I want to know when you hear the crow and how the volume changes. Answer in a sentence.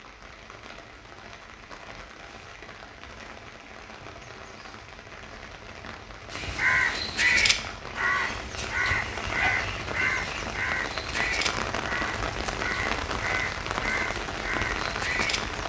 The crow can be heard from 6.3 to 15.4 s, getting quieter.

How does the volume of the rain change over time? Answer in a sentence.
The loudness of the rain goes up.